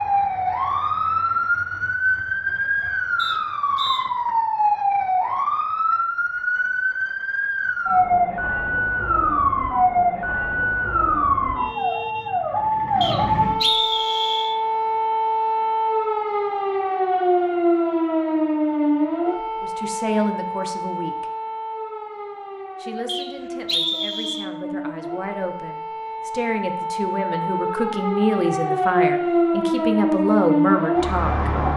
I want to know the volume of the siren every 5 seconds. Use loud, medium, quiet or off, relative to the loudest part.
loud, loud, loud, loud, medium, loud, loud.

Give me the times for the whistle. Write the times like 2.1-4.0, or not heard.
3.1-4.0, 13.0-14.6, 23.1-24.4.